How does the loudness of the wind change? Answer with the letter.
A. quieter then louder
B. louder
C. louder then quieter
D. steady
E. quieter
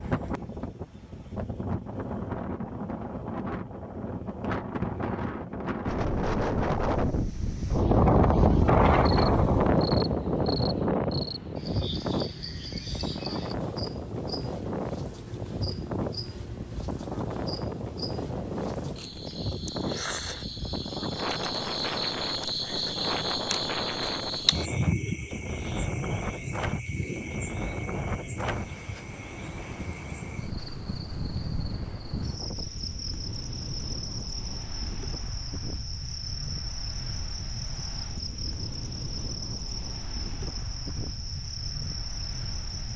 E.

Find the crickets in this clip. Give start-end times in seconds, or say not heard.
9.0-42.9.